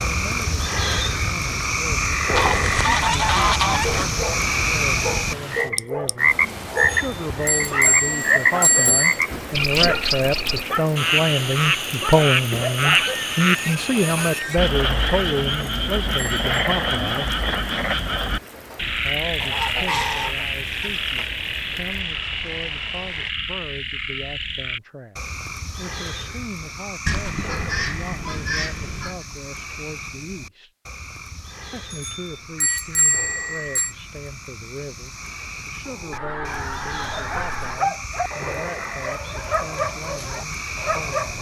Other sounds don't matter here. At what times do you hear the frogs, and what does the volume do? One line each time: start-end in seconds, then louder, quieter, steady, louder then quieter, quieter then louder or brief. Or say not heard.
0.0-41.3 quieter.